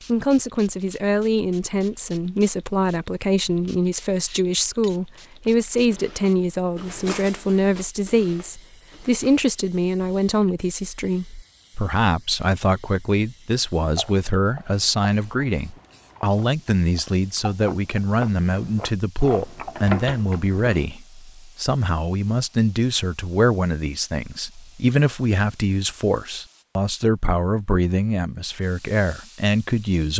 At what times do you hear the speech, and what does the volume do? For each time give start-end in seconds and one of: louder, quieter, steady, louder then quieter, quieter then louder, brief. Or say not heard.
0.1-30.1 steady.